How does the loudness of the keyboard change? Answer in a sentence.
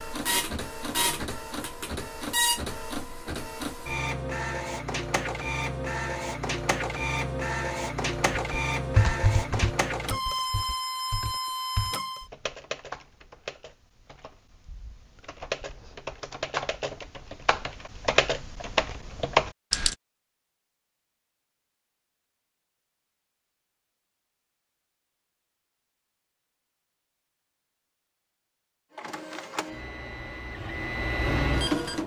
The volume of the keyboard goes down, then up.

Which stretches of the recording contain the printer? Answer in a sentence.
You can hear the printer from 0.0 to 12.2 s and from 28.9 to 32.0 s.